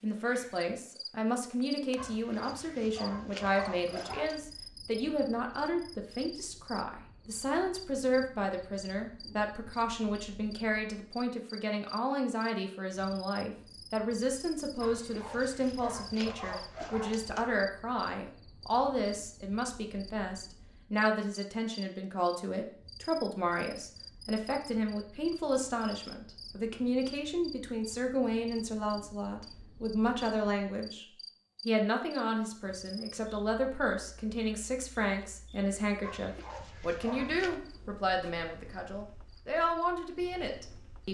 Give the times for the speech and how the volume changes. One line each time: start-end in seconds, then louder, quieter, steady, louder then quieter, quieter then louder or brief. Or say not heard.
0.0-31.1 steady
31.6-41.1 steady.